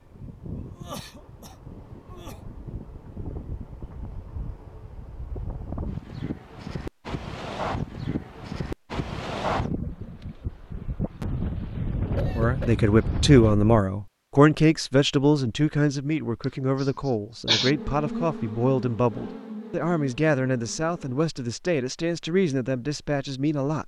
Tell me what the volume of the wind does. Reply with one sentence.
The volume of the wind goes up.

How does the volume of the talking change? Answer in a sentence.
The loudness of the talking goes down.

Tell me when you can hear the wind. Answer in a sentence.
The wind can be heard from 0.0 to 13.8 s.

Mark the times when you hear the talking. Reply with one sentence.
You can hear the talking from 12.3 to 23.8 s.